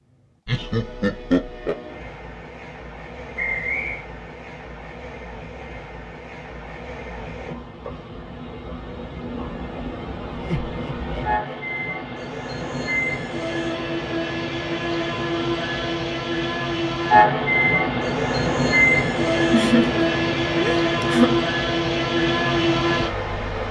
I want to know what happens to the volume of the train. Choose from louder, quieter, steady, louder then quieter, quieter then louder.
louder.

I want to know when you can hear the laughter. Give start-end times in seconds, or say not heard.
0.5-1.8, 10.3-11.6, 19.5-21.5.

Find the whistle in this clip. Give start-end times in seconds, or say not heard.
3.4-4.0.